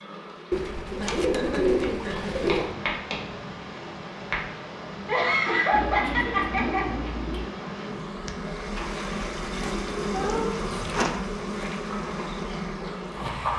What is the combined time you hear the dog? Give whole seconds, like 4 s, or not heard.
not heard.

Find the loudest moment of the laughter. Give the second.
6 s.